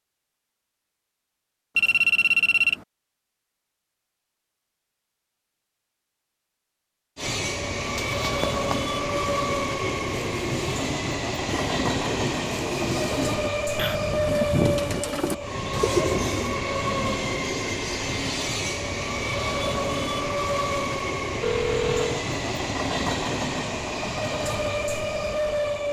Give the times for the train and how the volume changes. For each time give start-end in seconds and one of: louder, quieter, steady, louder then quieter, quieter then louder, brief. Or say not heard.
7.2-25.8 steady.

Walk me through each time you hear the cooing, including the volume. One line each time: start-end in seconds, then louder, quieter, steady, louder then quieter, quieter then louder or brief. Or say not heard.
7.8-16.6 louder.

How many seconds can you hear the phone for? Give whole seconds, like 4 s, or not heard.
3 s.